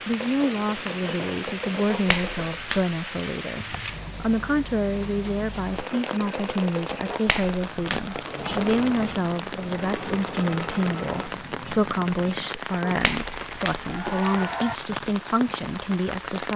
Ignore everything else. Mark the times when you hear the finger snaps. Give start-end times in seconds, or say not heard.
1.9-2.9, 7.0-8.2, 12.8-14.8.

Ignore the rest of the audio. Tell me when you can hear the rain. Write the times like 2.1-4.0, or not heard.
0.0-16.5.